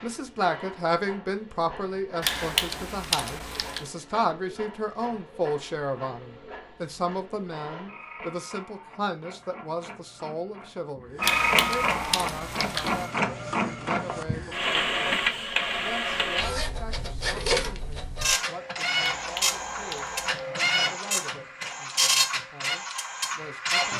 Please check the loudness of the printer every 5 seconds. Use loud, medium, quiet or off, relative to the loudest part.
quiet, quiet, loud, loud, loud.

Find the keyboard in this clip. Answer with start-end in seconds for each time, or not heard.
2.2-3.9, 11.2-13.1, 19.0-20.4.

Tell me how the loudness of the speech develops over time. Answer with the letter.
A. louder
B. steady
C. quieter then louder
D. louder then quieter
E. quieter
E.